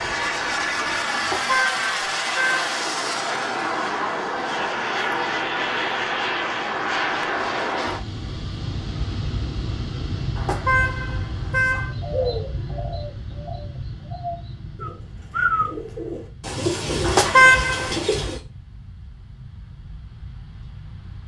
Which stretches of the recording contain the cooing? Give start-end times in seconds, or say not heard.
12.0-18.4.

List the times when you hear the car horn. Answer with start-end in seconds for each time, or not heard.
1.1-2.6, 10.3-11.9, 17.0-17.9.